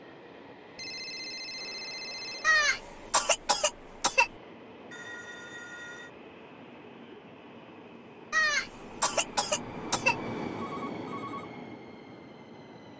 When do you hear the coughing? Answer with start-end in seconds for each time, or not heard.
2.4-4.3, 8.3-10.2.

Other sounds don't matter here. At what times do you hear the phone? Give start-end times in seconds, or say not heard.
0.8-2.5, 4.9-6.1, 10.5-11.5.